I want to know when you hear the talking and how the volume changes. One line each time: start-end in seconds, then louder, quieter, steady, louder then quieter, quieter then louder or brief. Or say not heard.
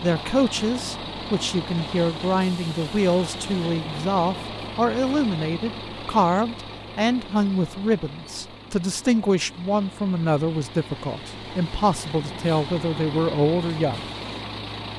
0.0-14.1 steady.